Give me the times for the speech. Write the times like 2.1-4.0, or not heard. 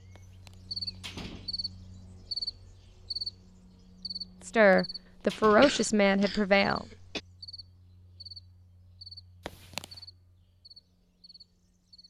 4.4-6.8.